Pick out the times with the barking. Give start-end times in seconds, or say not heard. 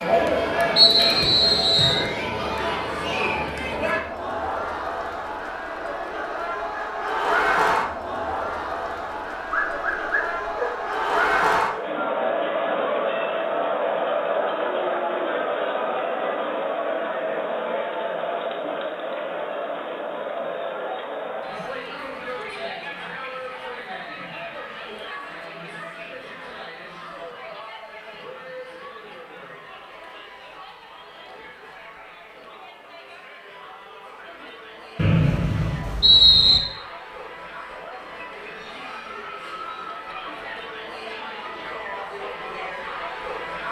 9.4-10.7.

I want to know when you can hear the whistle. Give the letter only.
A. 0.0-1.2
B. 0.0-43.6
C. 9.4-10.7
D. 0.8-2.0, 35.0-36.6
D.